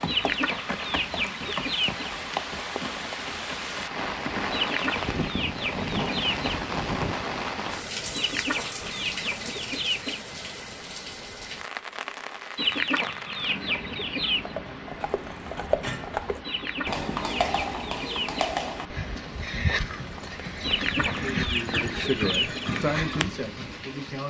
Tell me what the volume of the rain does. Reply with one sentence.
The loudness of the rain goes down.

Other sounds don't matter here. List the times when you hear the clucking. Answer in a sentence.
You can hear the clucking from 0.1 to 2.1 s, from 4.5 to 6.5 s, from 8.1 to 10.2 s, from 12.6 to 14.6 s, from 16.4 to 18.5 s and from 20.6 to 22.7 s.